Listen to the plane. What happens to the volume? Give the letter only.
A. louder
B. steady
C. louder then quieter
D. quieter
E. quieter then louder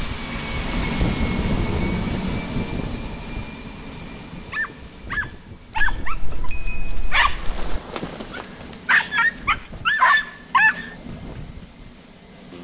D.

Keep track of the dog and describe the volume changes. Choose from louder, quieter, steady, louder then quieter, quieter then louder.
quieter then louder.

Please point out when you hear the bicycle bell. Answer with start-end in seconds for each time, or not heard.
5.8-7.5.